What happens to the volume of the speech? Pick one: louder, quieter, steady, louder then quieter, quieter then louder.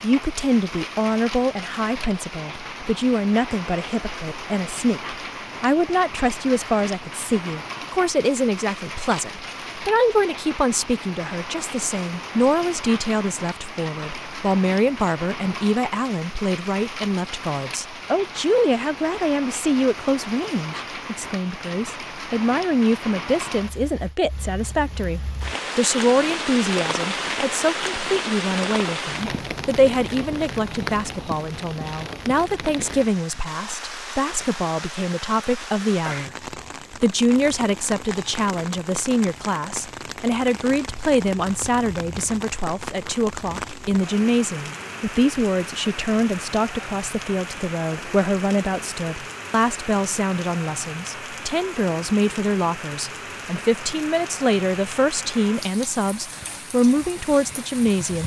steady.